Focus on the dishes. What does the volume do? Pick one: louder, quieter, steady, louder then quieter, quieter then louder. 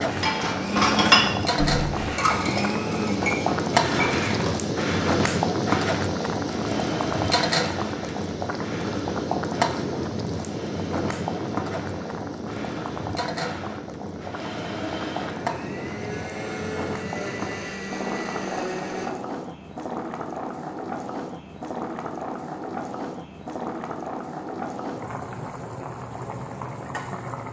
quieter.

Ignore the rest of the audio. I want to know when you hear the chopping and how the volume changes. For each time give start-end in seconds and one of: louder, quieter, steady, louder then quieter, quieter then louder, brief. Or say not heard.
not heard.